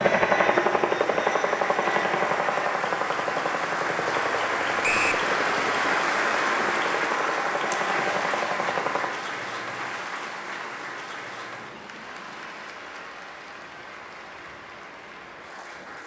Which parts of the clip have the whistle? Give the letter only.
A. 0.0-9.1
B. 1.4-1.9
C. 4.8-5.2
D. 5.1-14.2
C.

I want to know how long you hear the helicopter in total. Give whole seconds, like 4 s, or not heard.
9 s.